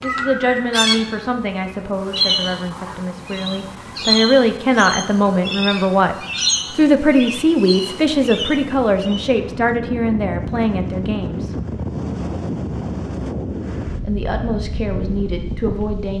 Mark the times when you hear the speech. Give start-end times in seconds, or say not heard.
0.0-11.6, 14.0-16.1.